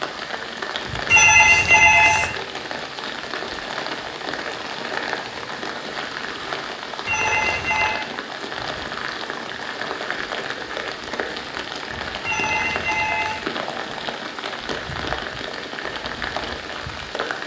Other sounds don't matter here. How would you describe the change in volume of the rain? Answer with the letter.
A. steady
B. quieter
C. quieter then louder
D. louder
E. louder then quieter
A.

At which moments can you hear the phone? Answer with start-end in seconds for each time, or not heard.
1.1-2.4, 7.0-8.1, 12.2-13.4.